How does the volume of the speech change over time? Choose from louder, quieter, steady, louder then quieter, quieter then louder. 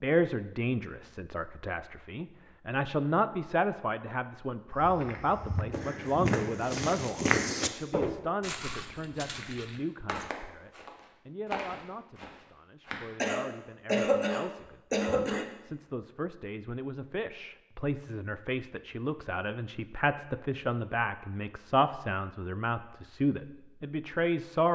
quieter then louder.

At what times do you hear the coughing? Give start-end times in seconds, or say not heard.
13.2-15.4.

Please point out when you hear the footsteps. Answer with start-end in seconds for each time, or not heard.
4.7-13.1.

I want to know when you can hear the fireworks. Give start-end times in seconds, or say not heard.
not heard.